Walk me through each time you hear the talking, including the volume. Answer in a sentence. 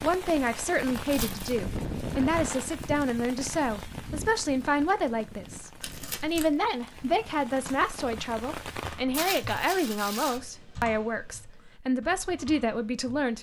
You can hear the talking from 0.0 to 13.3 s, at a steady volume.